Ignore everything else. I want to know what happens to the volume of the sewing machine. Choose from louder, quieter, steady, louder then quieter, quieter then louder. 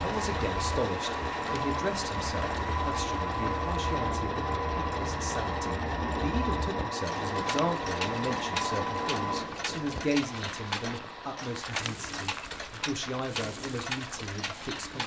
quieter.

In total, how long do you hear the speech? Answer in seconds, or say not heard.
15 s.